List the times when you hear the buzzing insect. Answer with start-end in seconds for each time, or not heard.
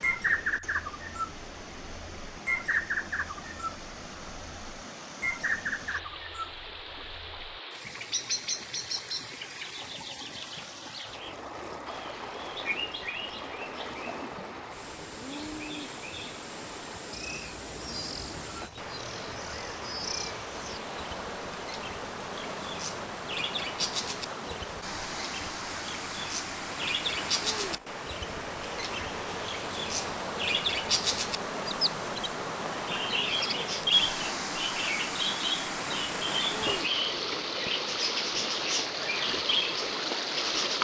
not heard.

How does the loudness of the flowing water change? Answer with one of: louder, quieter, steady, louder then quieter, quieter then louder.
louder.